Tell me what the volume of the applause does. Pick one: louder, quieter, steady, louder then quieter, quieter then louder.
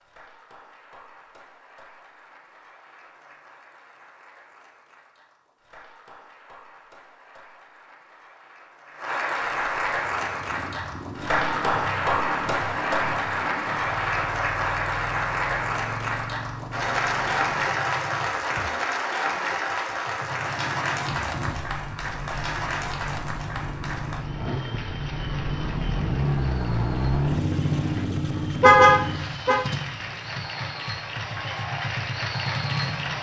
louder then quieter.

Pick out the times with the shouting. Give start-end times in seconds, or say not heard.
not heard.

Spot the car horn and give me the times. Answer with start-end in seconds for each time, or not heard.
28.6-29.6.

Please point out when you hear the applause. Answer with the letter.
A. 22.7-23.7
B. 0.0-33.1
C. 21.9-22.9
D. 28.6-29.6
B.